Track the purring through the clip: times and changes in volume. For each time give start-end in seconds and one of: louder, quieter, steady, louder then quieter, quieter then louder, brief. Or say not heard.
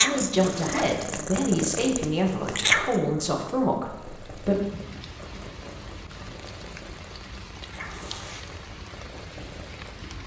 0.0-10.2 louder then quieter.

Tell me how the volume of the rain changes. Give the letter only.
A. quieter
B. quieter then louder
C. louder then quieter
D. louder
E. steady
E.